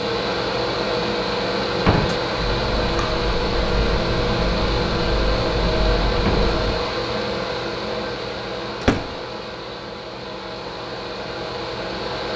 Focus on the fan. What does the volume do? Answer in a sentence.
The volume of the fan goes down.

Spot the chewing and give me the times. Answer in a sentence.
You can hear the chewing from 2.4 to 6.8 s.